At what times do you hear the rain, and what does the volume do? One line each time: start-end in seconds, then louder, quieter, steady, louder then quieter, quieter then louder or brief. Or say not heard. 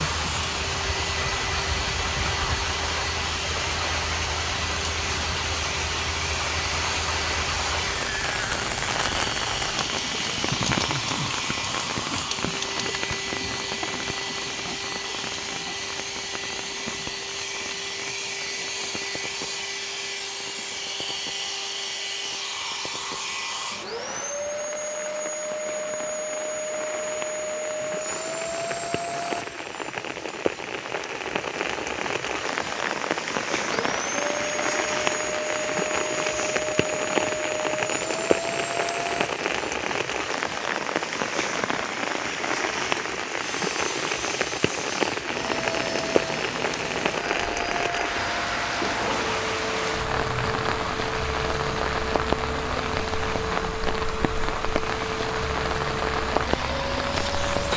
0.0-57.7 quieter then louder.